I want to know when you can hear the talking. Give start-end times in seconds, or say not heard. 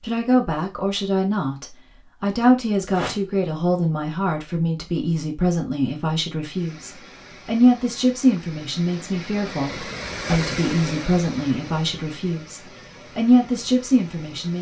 0.0-14.5.